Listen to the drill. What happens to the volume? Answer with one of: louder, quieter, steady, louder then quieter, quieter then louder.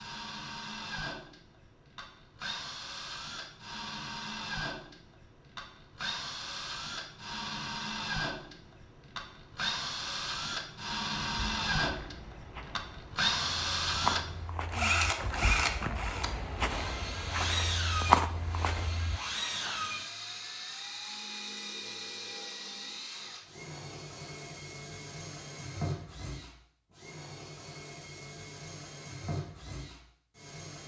louder then quieter.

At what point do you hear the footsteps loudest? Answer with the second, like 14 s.
18 s.